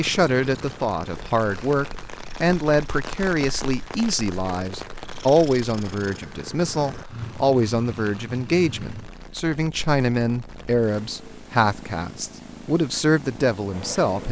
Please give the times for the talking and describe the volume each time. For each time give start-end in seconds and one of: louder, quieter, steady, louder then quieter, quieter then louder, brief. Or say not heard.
0.0-14.2 steady.